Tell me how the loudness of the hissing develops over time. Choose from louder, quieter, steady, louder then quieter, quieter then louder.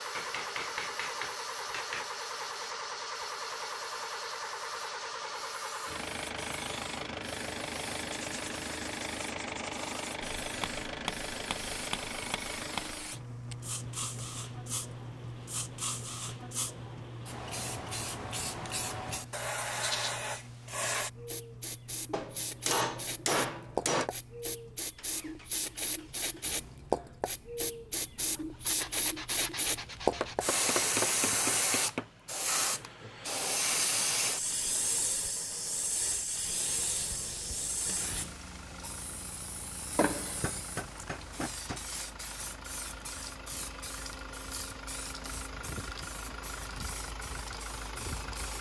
louder then quieter.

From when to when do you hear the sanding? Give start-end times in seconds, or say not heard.
8.1-10.2, 28.6-30.4, 36.5-38.1.